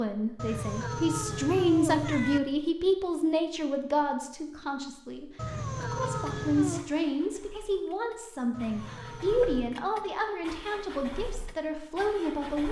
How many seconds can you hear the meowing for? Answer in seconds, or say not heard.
5 s.